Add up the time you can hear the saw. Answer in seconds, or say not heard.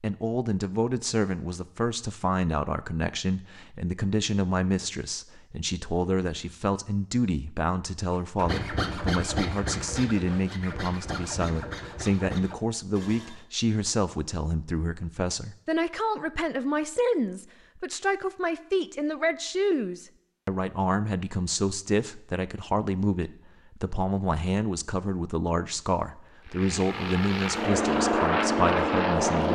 5 s.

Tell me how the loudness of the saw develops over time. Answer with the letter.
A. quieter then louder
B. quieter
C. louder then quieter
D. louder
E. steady
B.